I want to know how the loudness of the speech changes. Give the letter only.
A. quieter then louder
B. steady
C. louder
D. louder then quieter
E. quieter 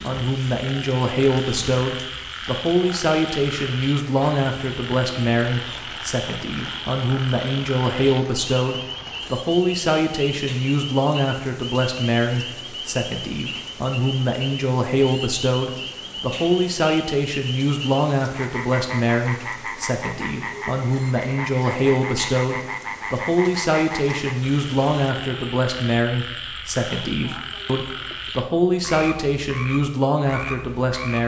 B.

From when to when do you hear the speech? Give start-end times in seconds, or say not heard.
0.0-31.2.